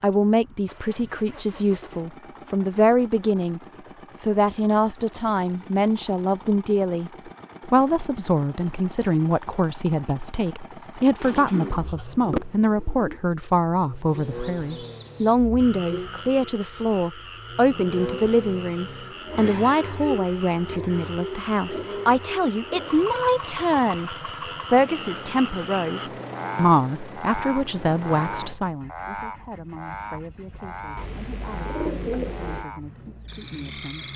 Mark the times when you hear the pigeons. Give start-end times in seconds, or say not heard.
11.2-13.2, 30.9-32.6.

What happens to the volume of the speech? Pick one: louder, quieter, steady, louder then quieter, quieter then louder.
quieter.